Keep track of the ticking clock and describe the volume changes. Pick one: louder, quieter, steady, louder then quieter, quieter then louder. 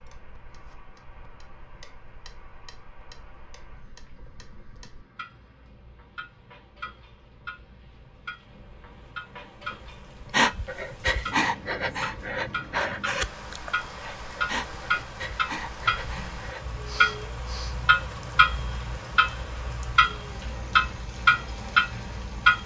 louder.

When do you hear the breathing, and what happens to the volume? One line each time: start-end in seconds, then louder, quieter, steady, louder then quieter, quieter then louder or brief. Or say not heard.
10.3-17.9 quieter.